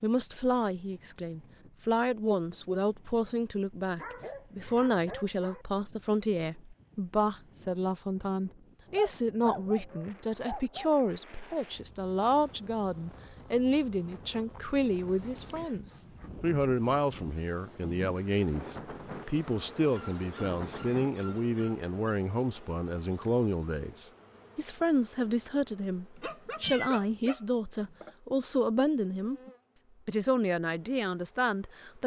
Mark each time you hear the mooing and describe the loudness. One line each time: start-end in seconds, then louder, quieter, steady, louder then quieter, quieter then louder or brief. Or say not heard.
not heard.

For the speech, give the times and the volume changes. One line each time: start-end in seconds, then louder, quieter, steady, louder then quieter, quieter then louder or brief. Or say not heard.
0.0-32.0 steady.